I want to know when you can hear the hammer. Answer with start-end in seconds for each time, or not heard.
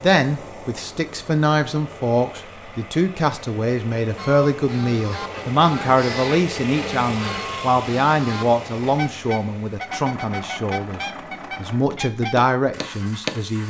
11.9-13.4.